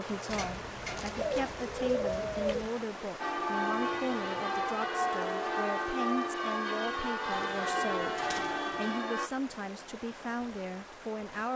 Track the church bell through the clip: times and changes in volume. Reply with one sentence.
The church bell can be heard from 3.2 to 9.3 s, at a steady volume.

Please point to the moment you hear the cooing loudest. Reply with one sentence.
The volume of the cooing peaks at 2 seconds.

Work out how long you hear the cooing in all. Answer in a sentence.
The cooing can be heard for 4 seconds in total.